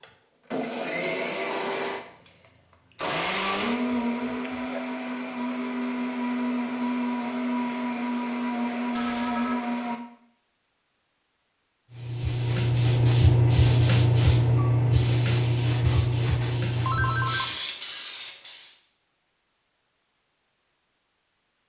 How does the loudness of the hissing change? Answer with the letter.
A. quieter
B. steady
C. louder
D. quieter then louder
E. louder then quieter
A.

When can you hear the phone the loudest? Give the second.
17 s.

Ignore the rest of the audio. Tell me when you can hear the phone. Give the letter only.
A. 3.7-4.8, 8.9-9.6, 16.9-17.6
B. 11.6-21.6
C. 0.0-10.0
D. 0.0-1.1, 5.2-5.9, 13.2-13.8
A.